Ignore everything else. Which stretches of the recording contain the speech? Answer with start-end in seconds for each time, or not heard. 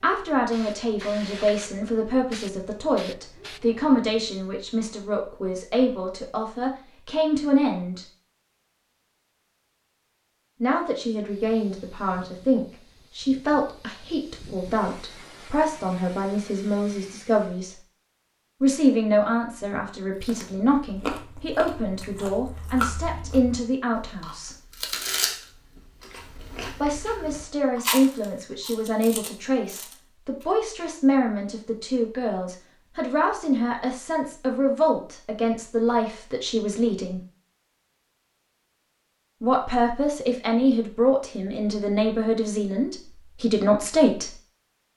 0.0-8.1, 10.6-17.8, 18.6-24.6, 26.8-37.2, 39.4-44.3.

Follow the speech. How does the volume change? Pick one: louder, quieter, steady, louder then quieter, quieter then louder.
steady.